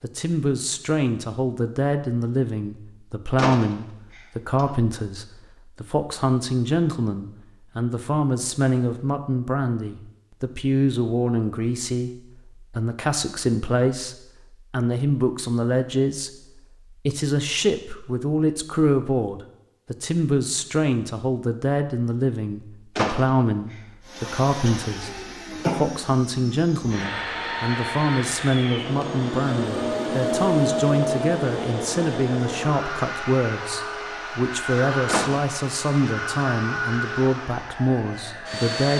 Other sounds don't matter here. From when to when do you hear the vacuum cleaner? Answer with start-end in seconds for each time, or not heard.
24.1-38.9.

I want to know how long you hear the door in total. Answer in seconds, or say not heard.
3 s.